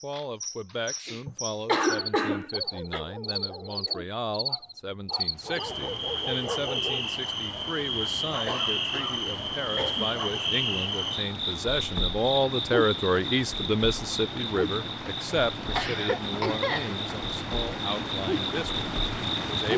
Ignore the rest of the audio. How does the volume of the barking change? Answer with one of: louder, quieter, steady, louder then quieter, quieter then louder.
quieter then louder.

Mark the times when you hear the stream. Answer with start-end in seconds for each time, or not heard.
5.2-19.7.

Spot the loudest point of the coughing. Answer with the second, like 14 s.
2 s.